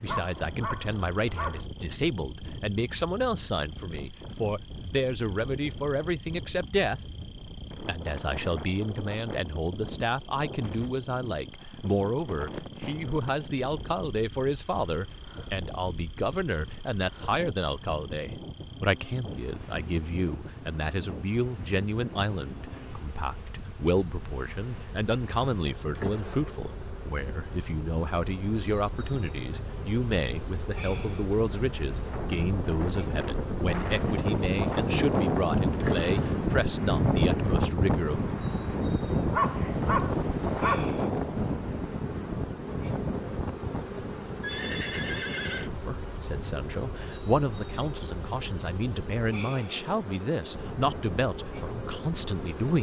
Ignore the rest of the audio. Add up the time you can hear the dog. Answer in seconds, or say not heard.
3 s.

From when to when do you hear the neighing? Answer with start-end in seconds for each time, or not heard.
44.4-45.7.